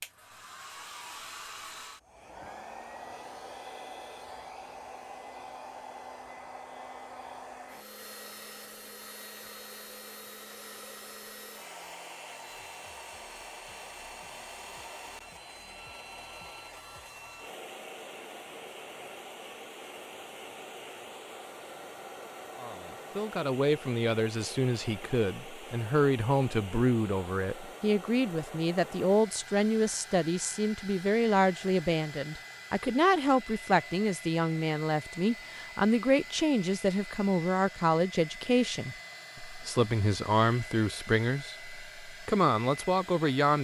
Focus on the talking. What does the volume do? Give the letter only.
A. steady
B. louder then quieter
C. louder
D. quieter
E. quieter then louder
A.